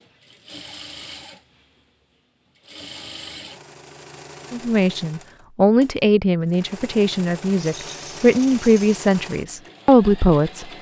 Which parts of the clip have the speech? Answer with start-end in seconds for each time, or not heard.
4.5-10.7.